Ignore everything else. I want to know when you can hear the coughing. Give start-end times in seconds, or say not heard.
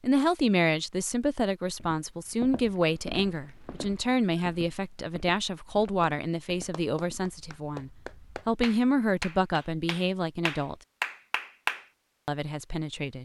not heard.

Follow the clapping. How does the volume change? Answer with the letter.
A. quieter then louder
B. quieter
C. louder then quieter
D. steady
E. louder
E.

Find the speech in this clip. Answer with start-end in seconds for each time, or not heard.
0.0-10.8, 12.2-13.2.